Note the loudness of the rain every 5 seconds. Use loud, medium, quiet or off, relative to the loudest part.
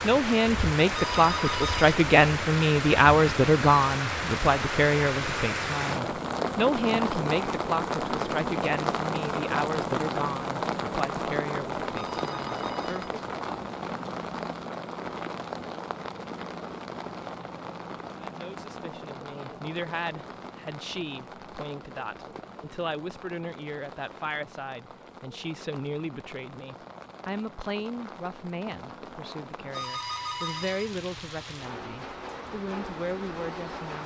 loud, loud, loud, medium, quiet, quiet, medium.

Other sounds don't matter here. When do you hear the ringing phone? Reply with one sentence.
You can hear the ringing phone from 0.9 to 2.0 s, from 11.9 to 13.2 s and from 29.7 to 30.9 s.